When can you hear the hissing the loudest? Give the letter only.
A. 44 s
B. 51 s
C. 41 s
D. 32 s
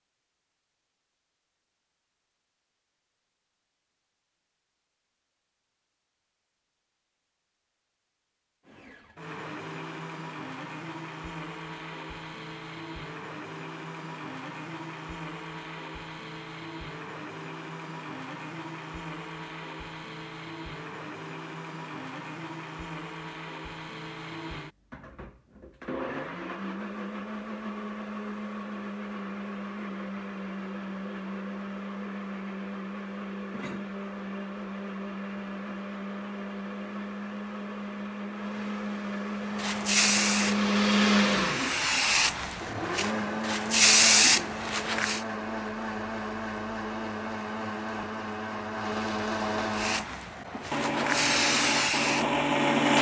A.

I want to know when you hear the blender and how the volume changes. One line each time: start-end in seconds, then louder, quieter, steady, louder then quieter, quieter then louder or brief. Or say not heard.
8.7-52.9 louder.